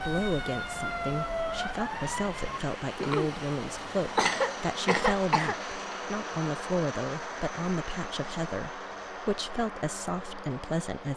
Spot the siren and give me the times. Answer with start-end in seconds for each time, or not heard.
0.0-2.6.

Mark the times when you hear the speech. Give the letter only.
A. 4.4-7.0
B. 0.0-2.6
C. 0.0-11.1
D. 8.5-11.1
C.